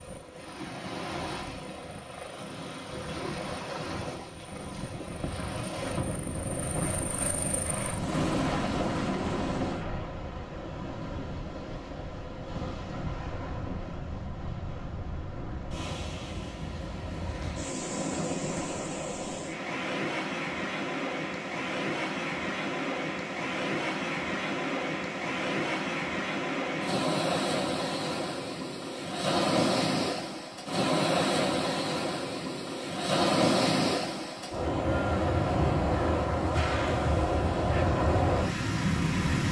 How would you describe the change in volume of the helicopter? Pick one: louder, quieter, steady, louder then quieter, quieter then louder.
louder.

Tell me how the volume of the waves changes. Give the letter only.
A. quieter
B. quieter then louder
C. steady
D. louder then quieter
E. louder
E.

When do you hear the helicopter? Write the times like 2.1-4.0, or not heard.
0.0-10.2.